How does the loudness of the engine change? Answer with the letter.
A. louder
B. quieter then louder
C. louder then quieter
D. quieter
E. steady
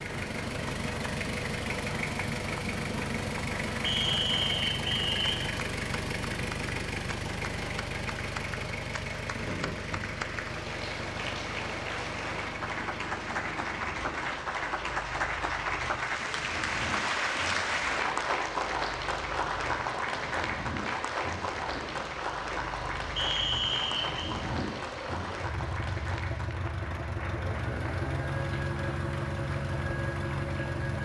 B.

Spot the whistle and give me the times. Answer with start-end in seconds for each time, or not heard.
3.8-5.4, 23.1-24.2.